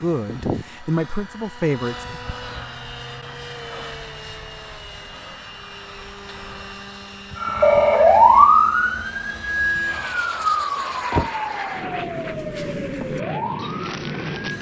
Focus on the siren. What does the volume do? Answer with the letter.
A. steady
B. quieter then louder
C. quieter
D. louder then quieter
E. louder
C.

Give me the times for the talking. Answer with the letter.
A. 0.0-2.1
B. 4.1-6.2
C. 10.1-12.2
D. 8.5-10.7
A.